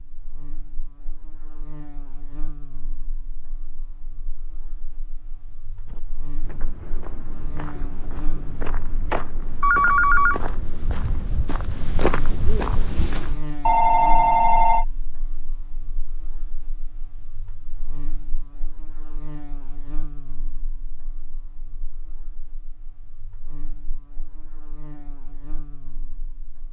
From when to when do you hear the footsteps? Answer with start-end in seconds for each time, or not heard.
5.8-13.4.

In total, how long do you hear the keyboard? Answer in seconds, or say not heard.
not heard.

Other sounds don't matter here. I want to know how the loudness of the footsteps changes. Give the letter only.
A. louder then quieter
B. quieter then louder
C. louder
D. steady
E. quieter
C.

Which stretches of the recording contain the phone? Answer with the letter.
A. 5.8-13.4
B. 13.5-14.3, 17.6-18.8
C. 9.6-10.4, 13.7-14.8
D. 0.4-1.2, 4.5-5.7
C.